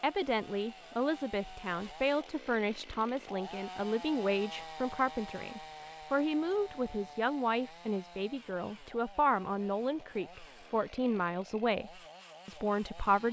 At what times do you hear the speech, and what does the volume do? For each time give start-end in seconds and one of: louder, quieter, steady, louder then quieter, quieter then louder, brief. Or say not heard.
0.0-13.2 steady.